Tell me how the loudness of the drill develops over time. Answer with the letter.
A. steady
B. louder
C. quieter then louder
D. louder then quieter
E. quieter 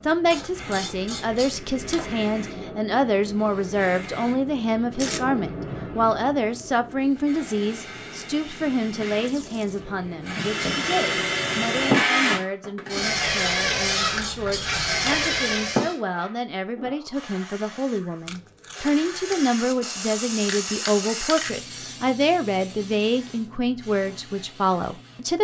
B.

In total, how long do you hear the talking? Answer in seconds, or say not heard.
25 s.